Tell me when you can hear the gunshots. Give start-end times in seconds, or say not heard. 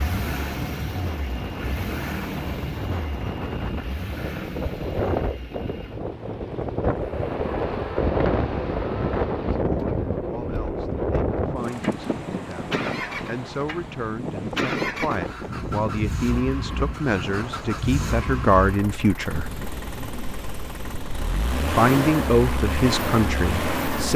not heard.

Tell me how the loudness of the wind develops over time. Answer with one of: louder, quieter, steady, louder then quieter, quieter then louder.
louder then quieter.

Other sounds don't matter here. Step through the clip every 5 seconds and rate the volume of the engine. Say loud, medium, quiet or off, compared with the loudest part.
medium, medium, medium, medium, loud.